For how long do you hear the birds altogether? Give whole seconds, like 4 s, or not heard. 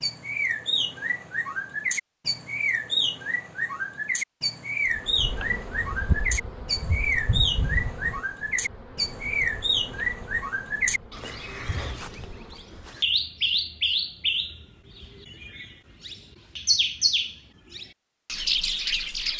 19 s.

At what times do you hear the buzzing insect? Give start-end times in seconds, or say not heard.
4.8-12.9.